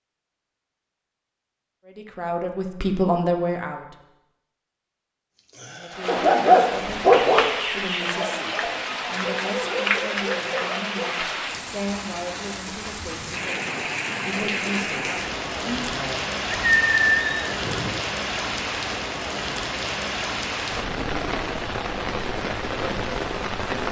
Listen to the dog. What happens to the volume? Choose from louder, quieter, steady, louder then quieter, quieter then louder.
quieter.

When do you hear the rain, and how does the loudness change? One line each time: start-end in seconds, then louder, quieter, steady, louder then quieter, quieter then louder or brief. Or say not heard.
5.9-23.8 steady.